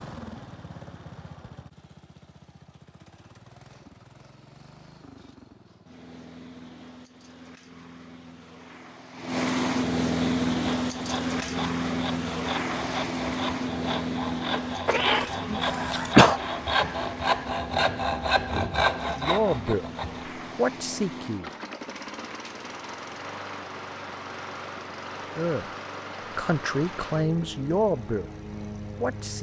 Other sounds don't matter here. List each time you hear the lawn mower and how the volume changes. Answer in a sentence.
The lawn mower can be heard from 0.0 to 29.3 s, getting louder then quieter.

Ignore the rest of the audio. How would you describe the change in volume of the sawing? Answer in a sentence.
The volume of the sawing goes up.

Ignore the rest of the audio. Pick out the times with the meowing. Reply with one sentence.
The meowing can be heard from 14.8 to 16.1 s.